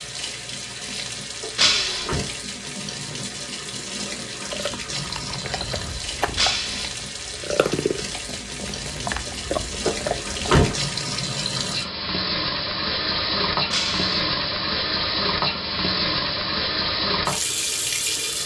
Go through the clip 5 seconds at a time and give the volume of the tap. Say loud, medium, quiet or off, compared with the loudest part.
medium, medium, loud, loud.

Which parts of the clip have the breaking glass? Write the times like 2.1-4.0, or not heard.
1.6-2.1, 6.3-6.9, 13.7-14.2.